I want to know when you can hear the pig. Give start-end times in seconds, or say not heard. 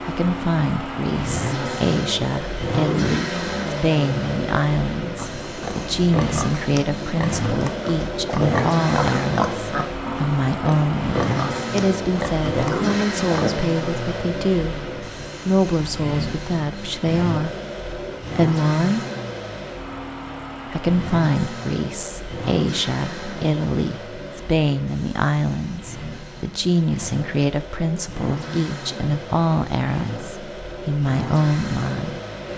5.2-13.5.